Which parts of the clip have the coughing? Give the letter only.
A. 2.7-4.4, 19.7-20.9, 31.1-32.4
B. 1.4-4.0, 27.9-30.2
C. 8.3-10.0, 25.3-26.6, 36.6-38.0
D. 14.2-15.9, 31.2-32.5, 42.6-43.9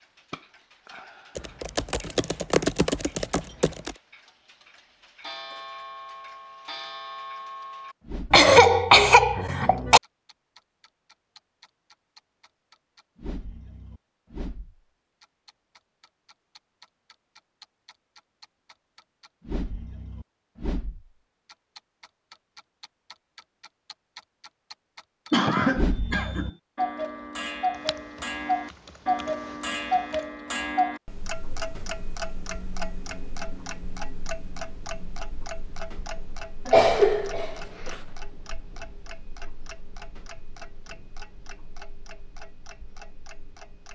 C.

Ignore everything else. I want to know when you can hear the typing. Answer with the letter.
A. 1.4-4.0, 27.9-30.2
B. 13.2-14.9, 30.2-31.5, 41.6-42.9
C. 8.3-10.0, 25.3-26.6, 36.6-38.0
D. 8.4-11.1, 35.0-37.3
A.